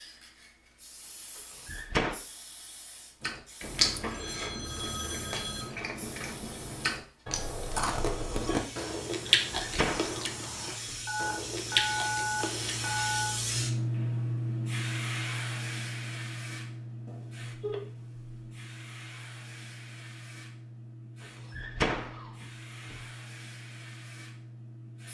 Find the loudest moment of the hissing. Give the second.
14 s.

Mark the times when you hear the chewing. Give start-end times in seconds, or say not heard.
3.2-13.1.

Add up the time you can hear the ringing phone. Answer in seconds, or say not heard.
6 s.